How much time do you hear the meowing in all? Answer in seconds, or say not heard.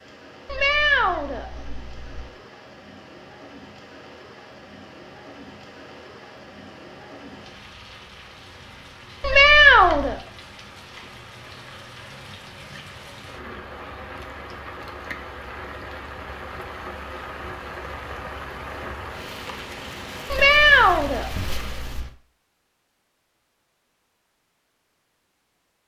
5 s.